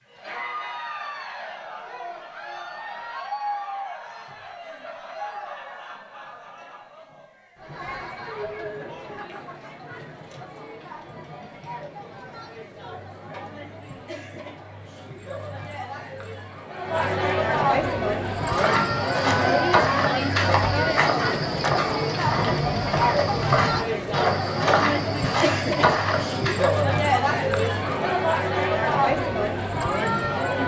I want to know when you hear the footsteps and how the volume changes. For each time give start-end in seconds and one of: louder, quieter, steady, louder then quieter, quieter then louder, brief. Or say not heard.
18.3-26.8 steady.